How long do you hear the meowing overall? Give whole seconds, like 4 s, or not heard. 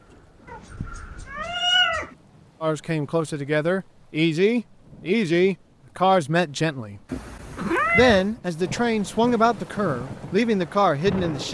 3 s.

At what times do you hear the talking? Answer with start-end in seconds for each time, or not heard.
2.6-11.5.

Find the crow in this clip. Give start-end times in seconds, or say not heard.
0.0-1.4.